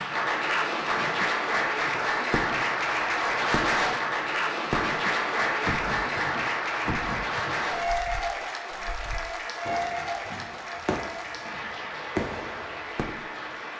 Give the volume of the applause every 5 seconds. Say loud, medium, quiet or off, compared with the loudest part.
loud, loud, medium.